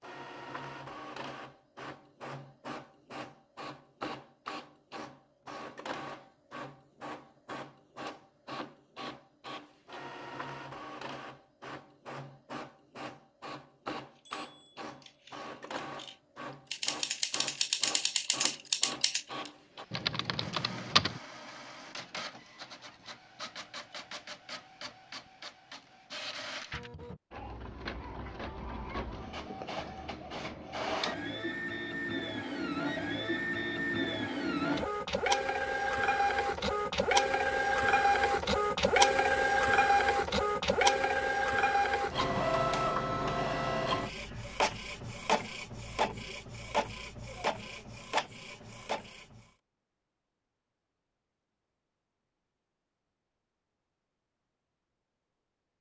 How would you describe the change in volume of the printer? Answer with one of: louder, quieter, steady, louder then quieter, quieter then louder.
louder.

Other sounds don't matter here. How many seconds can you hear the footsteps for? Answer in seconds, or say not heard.
not heard.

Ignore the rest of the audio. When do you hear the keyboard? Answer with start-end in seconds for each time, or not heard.
14.2-21.2.